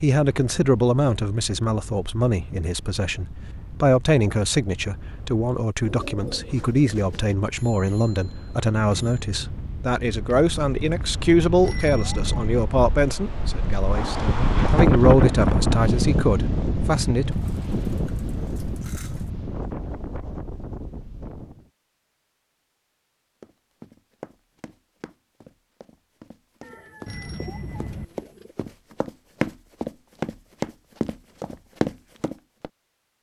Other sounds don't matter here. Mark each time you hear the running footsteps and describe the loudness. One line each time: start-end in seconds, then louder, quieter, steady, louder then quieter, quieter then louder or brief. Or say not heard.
23.4-32.7 louder.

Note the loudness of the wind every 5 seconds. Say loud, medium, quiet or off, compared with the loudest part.
quiet, quiet, loud, loud, quiet, off, off.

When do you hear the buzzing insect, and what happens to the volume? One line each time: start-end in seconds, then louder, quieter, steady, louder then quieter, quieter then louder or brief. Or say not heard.
not heard.